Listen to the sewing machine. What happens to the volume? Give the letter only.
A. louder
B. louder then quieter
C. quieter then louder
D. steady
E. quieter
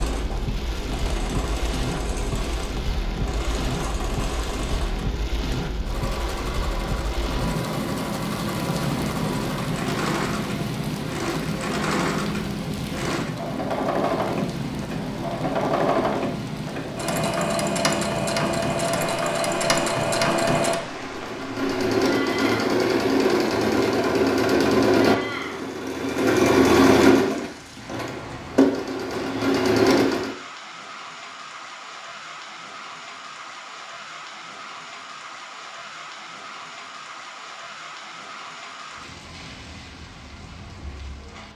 A.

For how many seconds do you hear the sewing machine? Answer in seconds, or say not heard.
30 s.